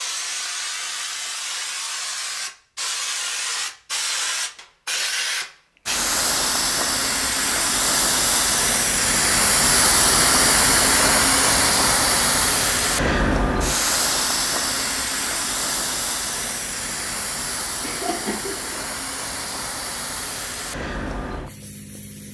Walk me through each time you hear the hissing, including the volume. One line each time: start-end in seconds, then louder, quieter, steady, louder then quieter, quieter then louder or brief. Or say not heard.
0.0-22.2 louder then quieter.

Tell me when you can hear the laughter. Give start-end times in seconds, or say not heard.
17.8-18.9.